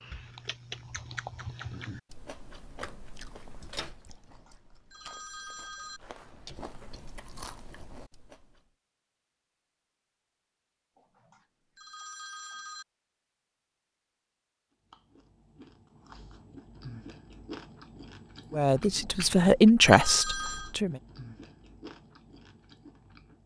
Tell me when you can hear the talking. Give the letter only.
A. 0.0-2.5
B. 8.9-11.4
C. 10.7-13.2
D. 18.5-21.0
D.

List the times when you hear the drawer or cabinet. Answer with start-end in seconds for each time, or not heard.
not heard.